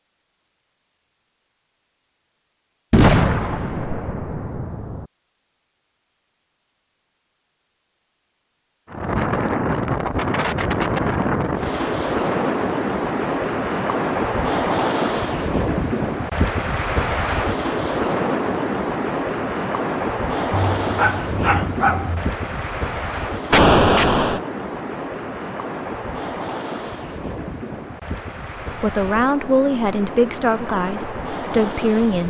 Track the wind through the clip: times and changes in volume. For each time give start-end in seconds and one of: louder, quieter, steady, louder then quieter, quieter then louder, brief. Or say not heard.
8.8-32.2 quieter.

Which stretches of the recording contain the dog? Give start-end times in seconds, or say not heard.
20.5-22.4.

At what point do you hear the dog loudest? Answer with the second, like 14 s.
22 s.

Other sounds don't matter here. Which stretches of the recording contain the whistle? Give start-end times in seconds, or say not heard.
not heard.